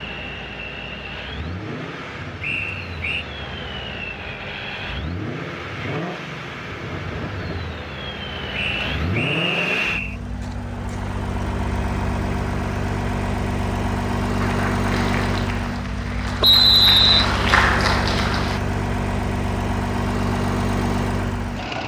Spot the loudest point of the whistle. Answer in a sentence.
The loudest moment of the whistle is at 17 seconds.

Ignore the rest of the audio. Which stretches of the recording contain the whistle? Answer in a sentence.
The whistle can be heard from 2.4 to 3.2 s, from 8.5 to 10.2 s and from 16.4 to 17.2 s.